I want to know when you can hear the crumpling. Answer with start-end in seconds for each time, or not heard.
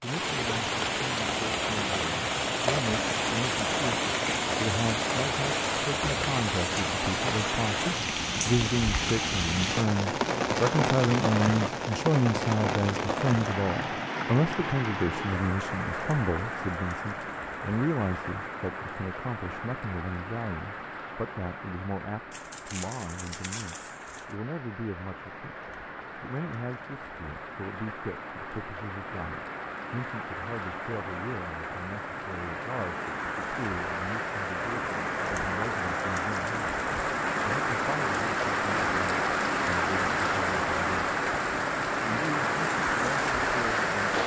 22.3-24.4.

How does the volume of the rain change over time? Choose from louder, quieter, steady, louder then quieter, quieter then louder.
quieter then louder.